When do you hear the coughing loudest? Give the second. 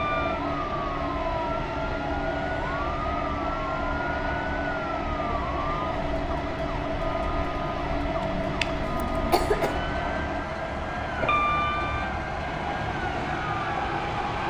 9 s.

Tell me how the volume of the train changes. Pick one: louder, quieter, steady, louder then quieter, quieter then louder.
steady.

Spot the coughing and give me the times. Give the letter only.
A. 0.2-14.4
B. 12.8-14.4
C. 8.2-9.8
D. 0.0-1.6
C.